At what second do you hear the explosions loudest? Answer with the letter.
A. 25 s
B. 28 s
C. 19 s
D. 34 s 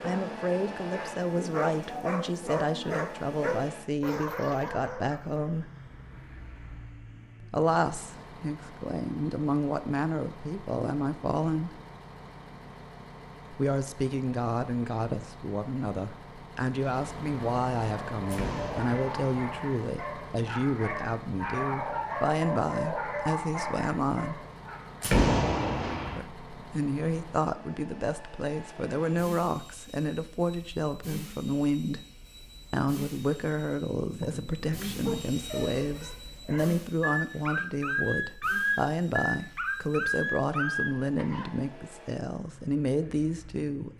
A.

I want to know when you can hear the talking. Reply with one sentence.
You can hear the talking from 0.0 to 5.7 s, from 7.4 to 11.8 s, from 13.5 to 24.4 s, from 26.1 to 32.0 s and from 32.7 to 43.9 s.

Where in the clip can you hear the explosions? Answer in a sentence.
The explosions can be heard from 18.2 to 19.4 s and from 25.0 to 26.2 s.